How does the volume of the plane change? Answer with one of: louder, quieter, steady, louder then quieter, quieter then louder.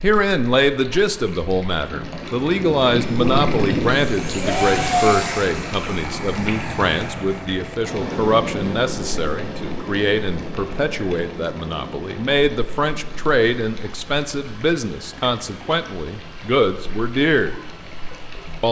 quieter.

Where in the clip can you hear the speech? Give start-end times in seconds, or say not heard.
0.0-17.6.